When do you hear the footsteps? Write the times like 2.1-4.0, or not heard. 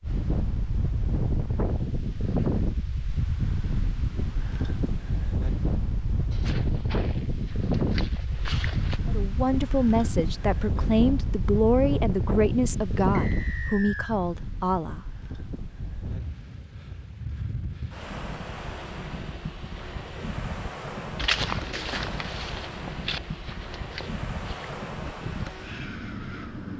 6.3-9.0, 21.1-24.7.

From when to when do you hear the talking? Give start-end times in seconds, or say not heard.
9.1-15.0.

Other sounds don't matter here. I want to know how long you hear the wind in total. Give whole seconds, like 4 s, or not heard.
27 s.